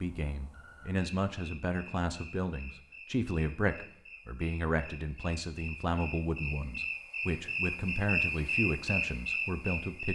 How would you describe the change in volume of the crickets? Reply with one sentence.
The loudness of the crickets goes up.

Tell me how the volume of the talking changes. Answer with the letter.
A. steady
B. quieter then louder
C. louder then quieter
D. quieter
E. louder
A.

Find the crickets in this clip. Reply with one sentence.
The crickets can be heard from 0.0 to 10.1 s.